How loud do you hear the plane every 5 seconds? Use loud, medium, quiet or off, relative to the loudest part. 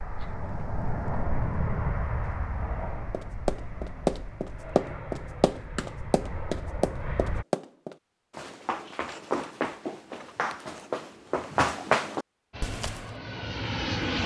loud, medium, loud.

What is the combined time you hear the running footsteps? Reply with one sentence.
You can hear the running footsteps for 10 seconds altogether.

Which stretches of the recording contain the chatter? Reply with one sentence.
The chatter can't be heard in this clip.